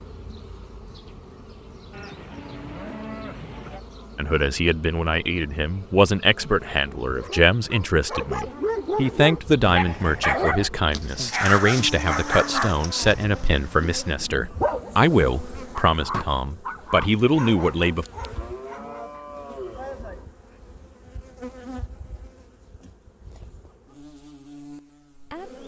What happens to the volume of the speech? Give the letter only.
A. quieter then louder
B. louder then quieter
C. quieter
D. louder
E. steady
E.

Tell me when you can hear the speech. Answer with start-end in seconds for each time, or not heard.
4.2-18.1.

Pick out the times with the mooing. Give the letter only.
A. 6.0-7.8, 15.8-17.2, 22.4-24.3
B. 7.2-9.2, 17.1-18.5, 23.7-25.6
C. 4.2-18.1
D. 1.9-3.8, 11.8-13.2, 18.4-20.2
D.